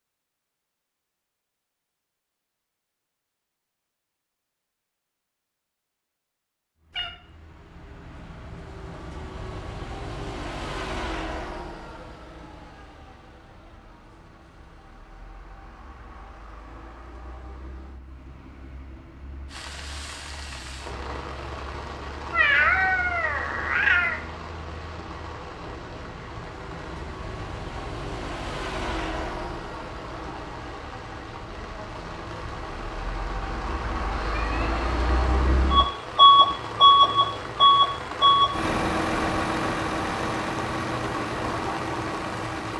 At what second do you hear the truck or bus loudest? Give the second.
37 s.